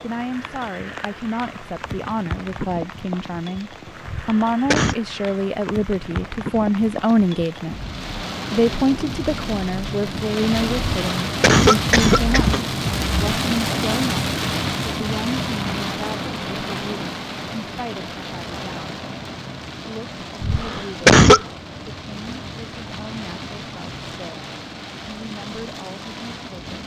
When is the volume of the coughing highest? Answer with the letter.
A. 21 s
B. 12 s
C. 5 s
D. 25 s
A.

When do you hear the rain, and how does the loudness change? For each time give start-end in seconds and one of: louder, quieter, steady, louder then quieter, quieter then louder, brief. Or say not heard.
0.0-26.8 louder then quieter.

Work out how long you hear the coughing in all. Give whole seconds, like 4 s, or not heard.
4 s.